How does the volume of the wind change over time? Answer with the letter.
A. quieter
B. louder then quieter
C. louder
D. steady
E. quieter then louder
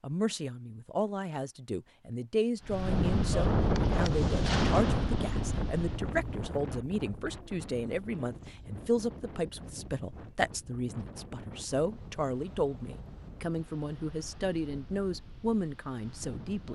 A.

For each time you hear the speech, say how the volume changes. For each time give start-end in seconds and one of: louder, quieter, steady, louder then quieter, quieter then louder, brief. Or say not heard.
0.0-16.7 steady.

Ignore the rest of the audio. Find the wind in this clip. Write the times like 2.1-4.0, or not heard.
2.6-16.7.